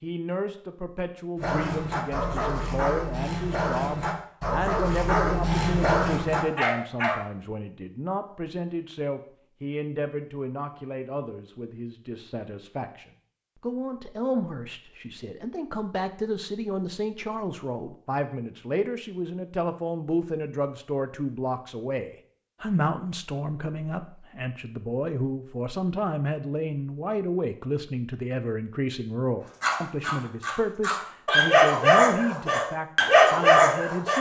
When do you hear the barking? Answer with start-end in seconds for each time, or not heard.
1.4-7.2, 29.6-34.1.